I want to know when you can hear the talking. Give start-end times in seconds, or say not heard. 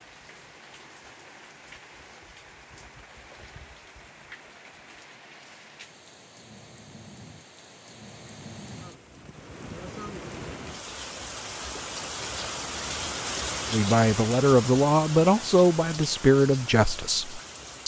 13.7-17.8.